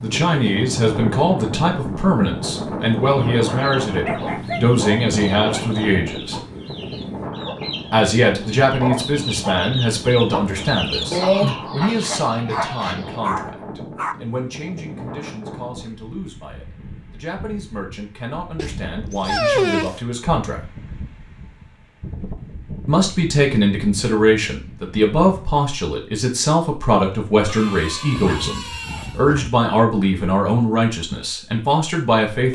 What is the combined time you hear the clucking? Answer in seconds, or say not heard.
10 s.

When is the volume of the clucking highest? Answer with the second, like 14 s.
11 s.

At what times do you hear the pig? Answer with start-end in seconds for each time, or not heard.
not heard.